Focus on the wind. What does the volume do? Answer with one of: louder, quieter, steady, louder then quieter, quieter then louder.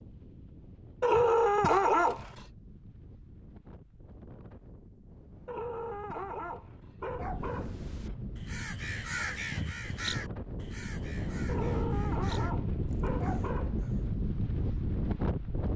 louder.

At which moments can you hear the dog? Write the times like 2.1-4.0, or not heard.
1.0-2.4, 5.5-8.2, 11.4-14.2.